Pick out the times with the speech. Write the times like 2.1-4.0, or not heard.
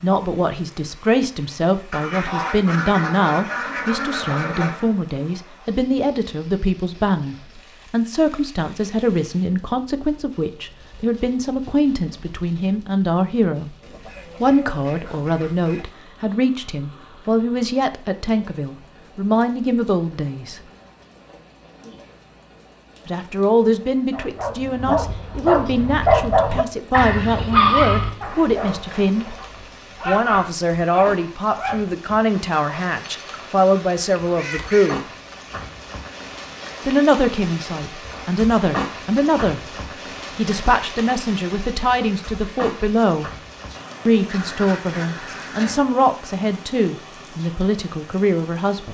0.0-13.8, 14.4-20.6, 23.1-29.3, 30.1-35.0, 36.8-43.4, 44.0-48.8.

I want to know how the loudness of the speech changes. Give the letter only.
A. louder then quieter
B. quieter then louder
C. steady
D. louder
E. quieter
C.